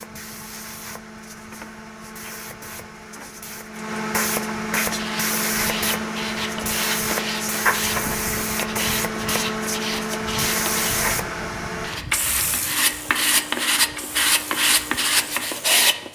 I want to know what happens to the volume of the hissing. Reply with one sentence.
The loudness of the hissing goes up, then down.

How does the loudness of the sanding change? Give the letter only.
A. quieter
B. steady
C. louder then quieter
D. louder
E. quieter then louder
D.